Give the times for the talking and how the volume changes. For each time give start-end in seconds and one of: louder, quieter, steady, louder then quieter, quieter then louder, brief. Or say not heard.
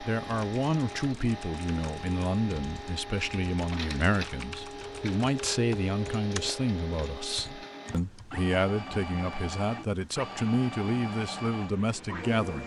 0.0-12.6 steady.